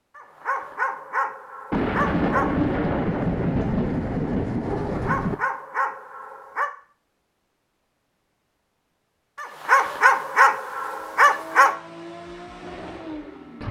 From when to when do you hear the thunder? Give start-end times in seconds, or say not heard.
1.7-5.3.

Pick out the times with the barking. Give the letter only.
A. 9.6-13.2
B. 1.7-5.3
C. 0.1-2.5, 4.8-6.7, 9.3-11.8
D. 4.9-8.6
C.